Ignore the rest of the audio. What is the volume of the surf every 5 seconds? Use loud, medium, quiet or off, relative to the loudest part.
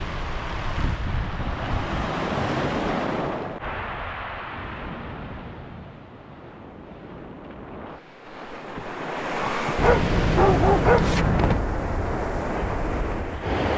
loud, medium, loud.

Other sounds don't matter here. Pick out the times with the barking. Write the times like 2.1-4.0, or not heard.
9.8-11.6.